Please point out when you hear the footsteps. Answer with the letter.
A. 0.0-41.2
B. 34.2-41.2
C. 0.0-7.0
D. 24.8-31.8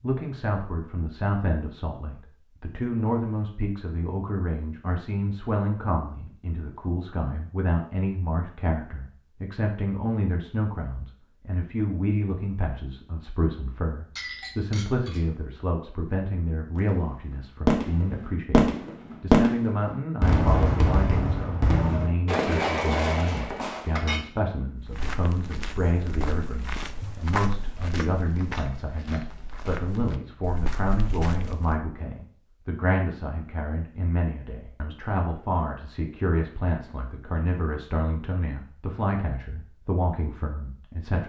D.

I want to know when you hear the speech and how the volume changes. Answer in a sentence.
You can hear the speech from 0.0 to 41.2 s, at a steady volume.